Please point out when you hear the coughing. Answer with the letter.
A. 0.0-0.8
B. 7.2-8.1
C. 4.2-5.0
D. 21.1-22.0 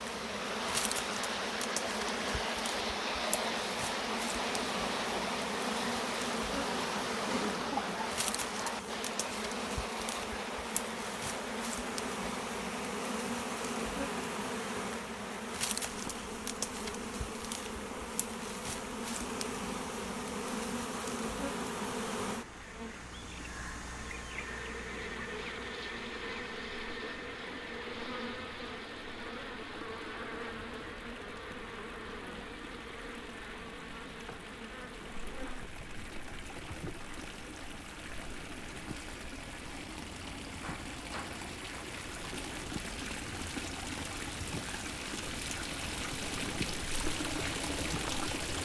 B.